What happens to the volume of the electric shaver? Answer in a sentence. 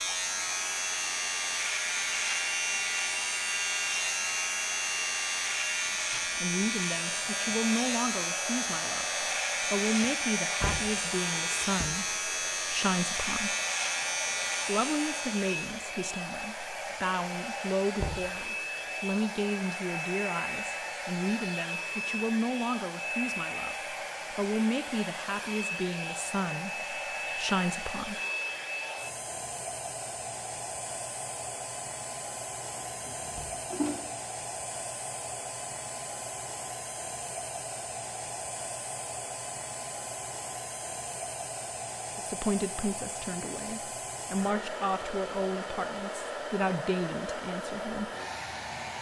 The volume of the electric shaver stays about the same.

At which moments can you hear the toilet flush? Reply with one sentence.
You can hear the toilet flush from 32.6 to 34.0 s.